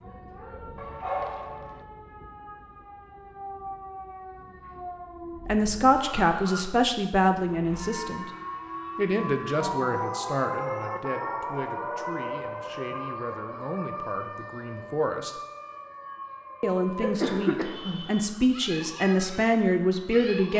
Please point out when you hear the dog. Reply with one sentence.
The dog can be heard from 0.8 to 1.9 s.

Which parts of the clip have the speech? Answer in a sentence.
The speech can be heard from 5.5 to 8.3 s, from 8.9 to 15.3 s and from 16.6 to 20.5 s.